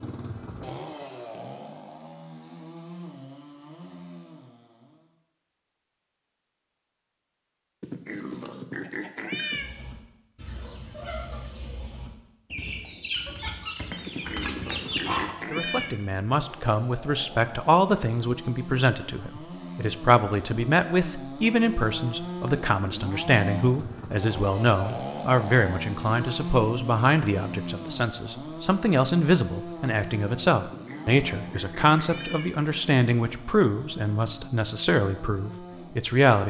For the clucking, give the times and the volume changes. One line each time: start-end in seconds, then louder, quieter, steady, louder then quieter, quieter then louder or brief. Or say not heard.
9.5-15.3 louder.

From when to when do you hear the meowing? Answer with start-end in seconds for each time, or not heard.
7.8-9.8, 14.1-15.9, 30.6-32.5.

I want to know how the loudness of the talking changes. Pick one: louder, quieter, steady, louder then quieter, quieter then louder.
steady.